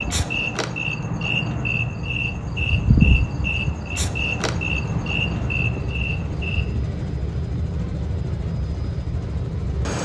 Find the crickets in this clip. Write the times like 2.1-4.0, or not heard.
0.0-6.8.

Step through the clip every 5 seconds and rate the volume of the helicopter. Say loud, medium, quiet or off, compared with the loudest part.
medium, loud.